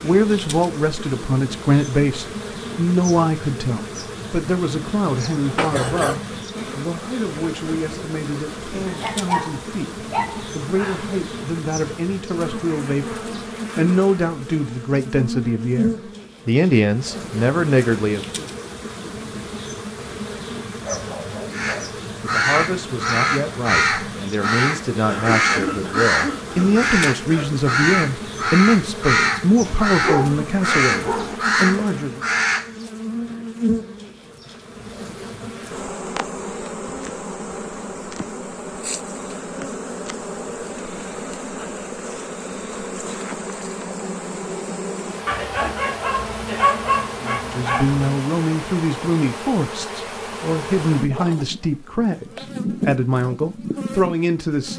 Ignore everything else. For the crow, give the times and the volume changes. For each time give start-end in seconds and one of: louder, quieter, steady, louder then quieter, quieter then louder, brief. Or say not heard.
21.5-32.7 steady.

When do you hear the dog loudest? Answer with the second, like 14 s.
47 s.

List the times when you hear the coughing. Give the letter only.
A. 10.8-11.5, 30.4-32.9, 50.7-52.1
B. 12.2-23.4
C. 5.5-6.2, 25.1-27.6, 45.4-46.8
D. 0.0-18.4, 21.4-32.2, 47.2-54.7
C.